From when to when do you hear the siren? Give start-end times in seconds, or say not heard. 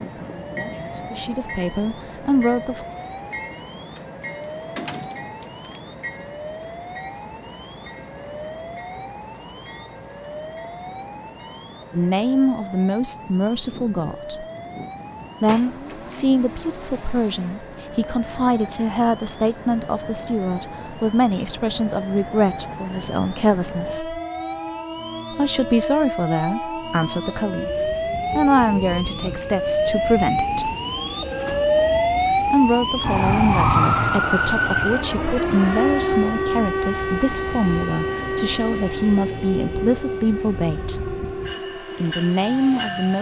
0.0-43.1.